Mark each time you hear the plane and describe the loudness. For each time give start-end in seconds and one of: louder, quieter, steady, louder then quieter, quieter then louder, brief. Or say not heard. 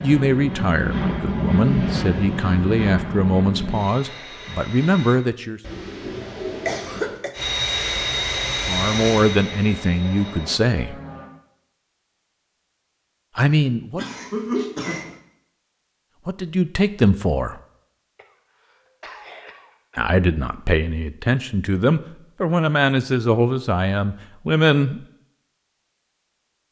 0.0-5.2 quieter
7.3-11.3 quieter.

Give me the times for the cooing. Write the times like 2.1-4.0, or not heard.
5.6-7.2.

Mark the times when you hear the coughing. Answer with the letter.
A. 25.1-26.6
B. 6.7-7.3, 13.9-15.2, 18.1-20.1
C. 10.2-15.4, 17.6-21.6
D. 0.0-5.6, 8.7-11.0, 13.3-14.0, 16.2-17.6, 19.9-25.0
B.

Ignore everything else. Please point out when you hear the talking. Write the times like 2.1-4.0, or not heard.
0.0-5.6, 8.7-11.0, 13.3-14.0, 16.2-17.6, 19.9-25.0.